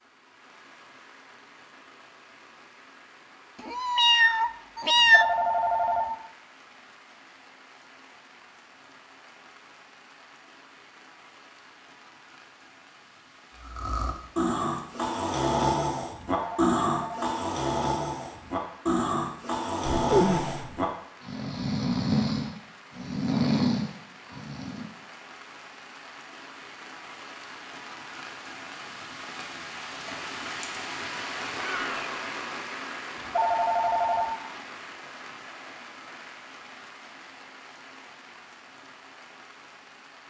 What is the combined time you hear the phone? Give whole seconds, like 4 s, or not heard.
3 s.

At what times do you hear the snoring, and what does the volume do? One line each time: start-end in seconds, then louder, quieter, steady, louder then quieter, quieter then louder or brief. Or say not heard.
13.6-24.9 steady.